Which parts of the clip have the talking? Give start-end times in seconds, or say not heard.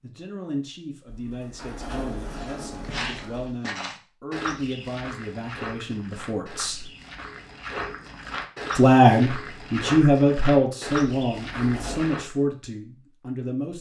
0.0-6.9, 8.8-13.7.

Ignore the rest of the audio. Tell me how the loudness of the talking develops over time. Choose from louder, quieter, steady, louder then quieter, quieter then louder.
louder then quieter.